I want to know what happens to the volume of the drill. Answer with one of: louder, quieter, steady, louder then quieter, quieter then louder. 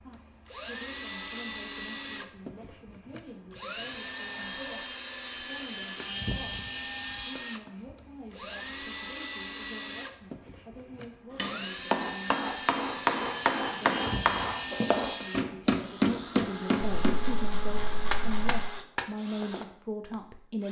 steady.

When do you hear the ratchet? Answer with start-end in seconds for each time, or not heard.
16.8-18.7.